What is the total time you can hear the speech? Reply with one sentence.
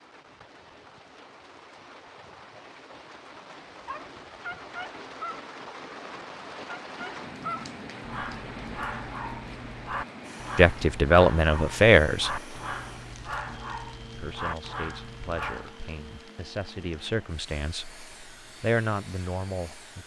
You can hear the speech for 7 seconds altogether.